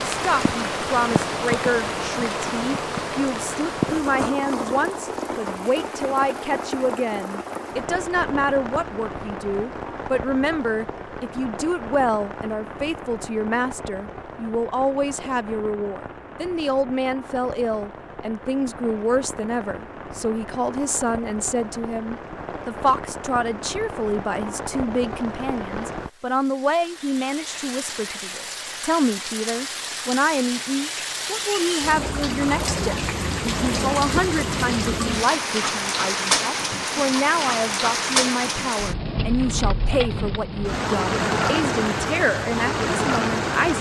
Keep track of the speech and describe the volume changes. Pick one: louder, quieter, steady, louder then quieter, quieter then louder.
steady.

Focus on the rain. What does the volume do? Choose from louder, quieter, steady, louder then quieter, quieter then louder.
quieter then louder.